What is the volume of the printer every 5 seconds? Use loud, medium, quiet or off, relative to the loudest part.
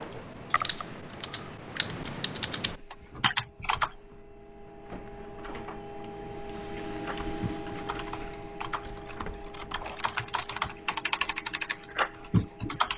medium, loud, medium.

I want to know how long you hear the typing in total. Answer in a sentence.
You can hear the typing for 10 seconds altogether.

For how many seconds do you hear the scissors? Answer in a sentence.
The scissors can be heard for 2 seconds in total.